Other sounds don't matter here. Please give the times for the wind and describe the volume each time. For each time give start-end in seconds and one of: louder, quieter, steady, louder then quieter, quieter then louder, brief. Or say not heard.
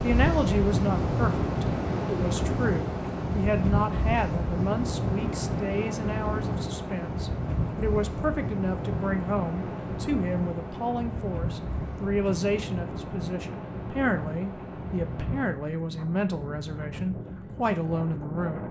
0.0-18.6 quieter.